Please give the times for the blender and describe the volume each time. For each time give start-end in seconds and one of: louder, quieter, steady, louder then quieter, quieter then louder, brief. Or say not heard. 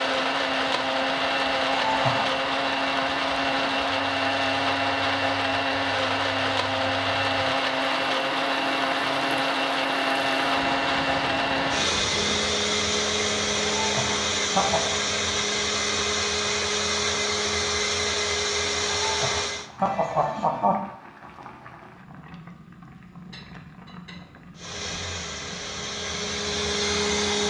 0.0-19.7 steady
24.6-27.4 brief.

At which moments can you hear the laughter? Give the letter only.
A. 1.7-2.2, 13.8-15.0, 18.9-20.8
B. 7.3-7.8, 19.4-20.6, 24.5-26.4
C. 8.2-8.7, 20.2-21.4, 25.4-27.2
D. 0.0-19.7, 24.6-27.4
A.